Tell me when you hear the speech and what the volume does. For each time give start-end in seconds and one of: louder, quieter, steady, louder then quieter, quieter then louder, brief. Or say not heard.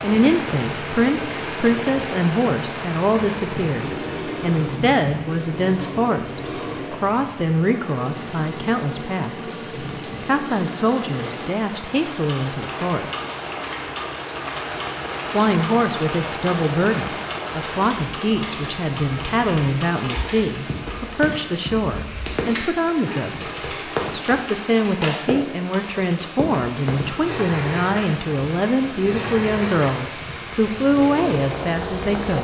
0.0-9.6 steady
10.2-13.1 brief
15.3-32.4 steady.